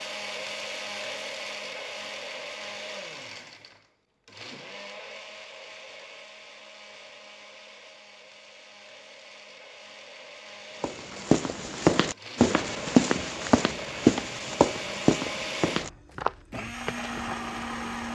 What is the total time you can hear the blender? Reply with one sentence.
You can hear the blender for 18 seconds altogether.